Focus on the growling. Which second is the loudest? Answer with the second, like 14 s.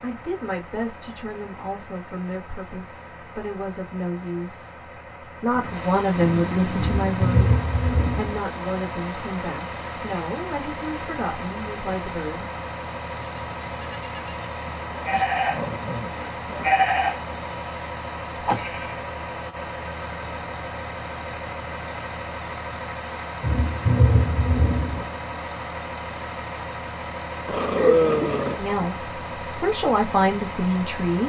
28 s.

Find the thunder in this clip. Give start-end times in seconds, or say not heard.
6.8-8.4, 23.4-25.1.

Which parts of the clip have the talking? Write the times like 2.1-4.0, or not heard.
0.0-4.8, 5.4-12.4, 28.6-31.2.